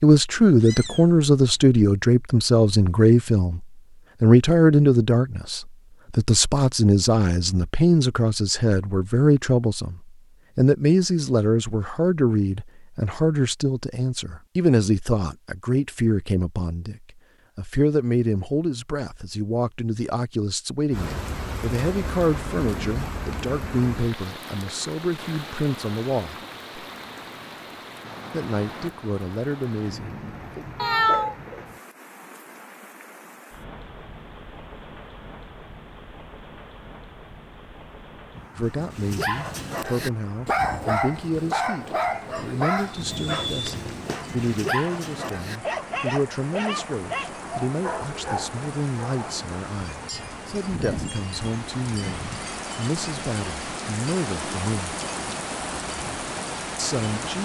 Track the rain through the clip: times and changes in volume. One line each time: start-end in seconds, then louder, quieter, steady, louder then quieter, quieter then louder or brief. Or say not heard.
20.9-57.4 quieter then louder.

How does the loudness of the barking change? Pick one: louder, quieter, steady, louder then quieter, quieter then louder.
quieter.